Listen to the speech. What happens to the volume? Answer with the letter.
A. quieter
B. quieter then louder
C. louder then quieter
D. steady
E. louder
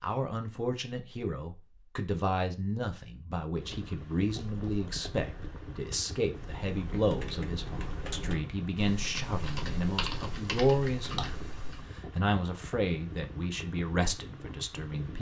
D.